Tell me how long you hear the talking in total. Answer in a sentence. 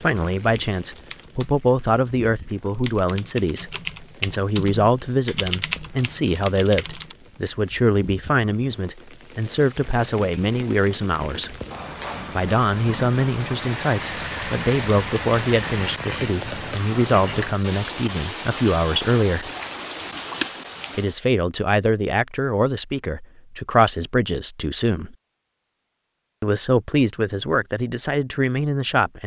The talking can be heard for 26 seconds in total.